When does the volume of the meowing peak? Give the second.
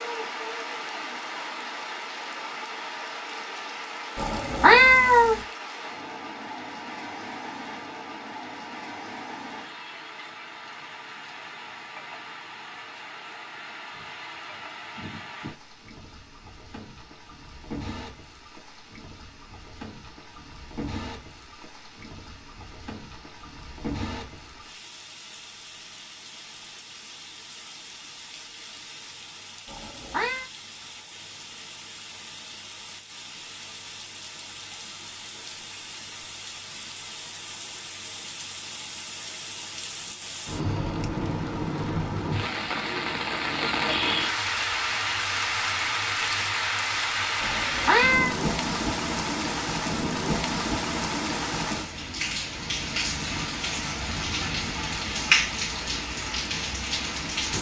5 s.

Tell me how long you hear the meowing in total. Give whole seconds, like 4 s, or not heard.
3 s.